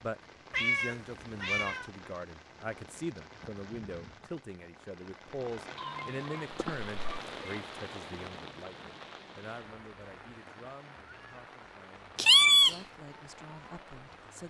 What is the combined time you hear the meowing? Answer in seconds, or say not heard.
4 s.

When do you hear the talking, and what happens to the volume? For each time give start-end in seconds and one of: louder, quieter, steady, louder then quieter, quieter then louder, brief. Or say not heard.
0.0-14.4 quieter.